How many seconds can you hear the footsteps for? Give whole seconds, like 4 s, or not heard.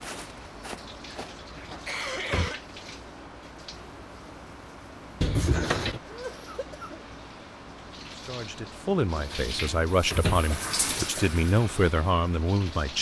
2 s.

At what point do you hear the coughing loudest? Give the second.
2 s.